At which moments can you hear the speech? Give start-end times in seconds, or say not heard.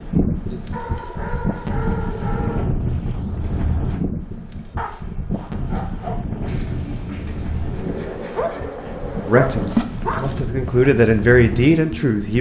9.2-12.3.